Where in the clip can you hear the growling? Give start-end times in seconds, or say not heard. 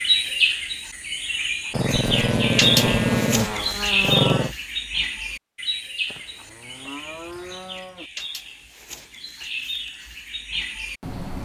1.7-4.5.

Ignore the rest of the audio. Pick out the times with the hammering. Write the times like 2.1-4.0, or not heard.
not heard.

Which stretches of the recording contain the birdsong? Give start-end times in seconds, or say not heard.
0.0-11.4.